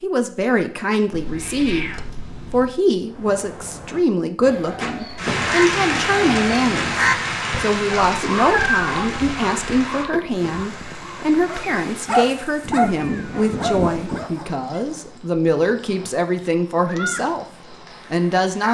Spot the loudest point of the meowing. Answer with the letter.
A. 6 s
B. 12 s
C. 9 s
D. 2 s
C.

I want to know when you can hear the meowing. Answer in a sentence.
The meowing can be heard from 1.1 to 2.8 s, from 8.1 to 9.3 s and from 12.6 to 14.3 s.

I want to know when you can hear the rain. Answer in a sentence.
The rain can be heard from 4.8 to 18.7 s.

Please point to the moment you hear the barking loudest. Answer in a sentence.
The loudest moment of the barking is at 12 seconds.